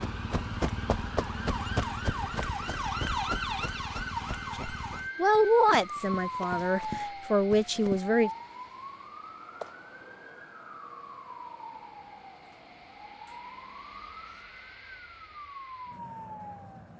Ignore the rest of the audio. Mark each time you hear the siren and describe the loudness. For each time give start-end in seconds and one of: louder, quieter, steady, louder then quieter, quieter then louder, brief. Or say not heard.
0.0-16.9 quieter.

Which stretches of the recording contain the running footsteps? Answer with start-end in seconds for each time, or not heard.
0.0-8.0.